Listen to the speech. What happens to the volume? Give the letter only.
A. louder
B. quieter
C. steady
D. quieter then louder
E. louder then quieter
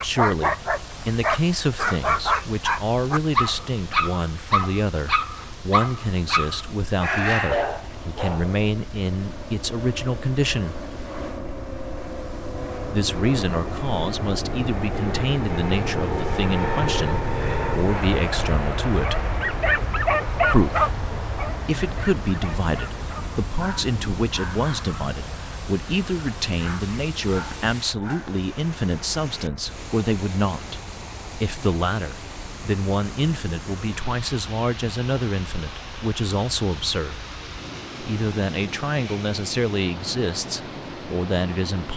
C.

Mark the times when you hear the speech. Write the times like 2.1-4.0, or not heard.
0.0-10.8, 12.9-19.4, 20.4-37.2, 38.0-41.9.